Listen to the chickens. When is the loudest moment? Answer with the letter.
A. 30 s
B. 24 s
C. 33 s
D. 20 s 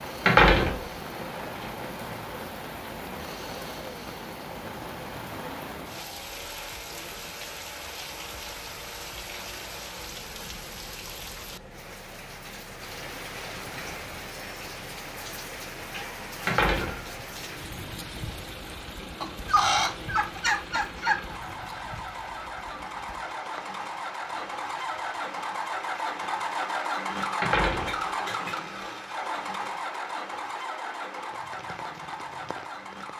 D.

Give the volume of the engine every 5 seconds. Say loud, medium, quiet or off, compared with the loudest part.
quiet, quiet, quiet, quiet, medium, loud, medium.